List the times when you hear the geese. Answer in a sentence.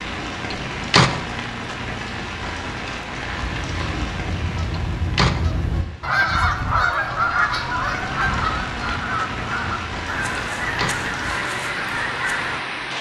The geese can be heard from 3.3 to 12.6 s.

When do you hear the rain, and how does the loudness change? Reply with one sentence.
You can hear the rain from 0.0 to 12.9 s, getting quieter then louder.